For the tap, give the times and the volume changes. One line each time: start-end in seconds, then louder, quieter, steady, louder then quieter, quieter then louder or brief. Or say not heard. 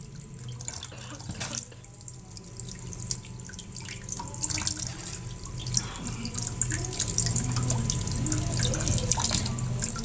0.0-10.0 louder.